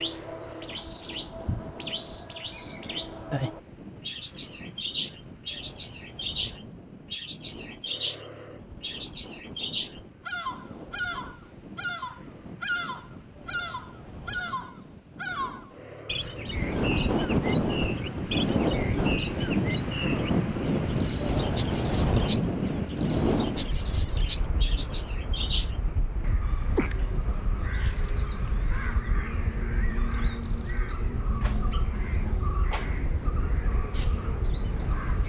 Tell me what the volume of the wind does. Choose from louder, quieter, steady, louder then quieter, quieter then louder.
louder then quieter.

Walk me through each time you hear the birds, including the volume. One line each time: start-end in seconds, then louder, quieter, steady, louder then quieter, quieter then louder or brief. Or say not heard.
0.0-35.2 steady.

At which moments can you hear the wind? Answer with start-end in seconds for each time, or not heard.
0.0-35.2.